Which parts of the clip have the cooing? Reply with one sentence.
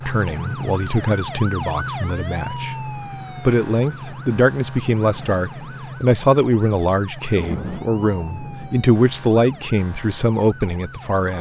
You can't hear the cooing here.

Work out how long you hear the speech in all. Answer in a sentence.
The speech can be heard for 11 seconds in total.